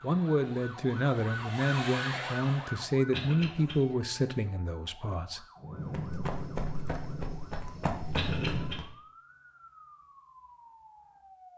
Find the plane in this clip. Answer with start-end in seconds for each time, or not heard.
0.0-3.0, 5.5-8.8.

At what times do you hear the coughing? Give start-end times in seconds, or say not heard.
3.1-3.8, 8.2-8.8.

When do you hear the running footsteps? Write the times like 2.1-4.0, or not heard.
5.8-8.9.